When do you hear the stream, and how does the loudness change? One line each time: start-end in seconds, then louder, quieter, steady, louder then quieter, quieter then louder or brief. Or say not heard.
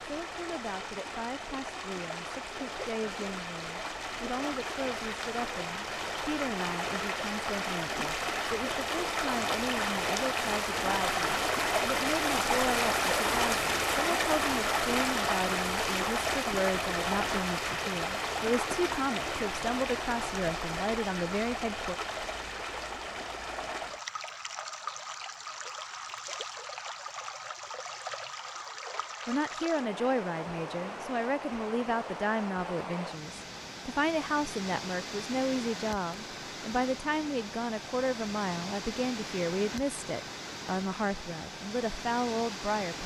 0.0-43.0 louder then quieter.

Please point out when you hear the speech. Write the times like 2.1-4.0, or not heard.
0.0-21.9, 29.2-43.0.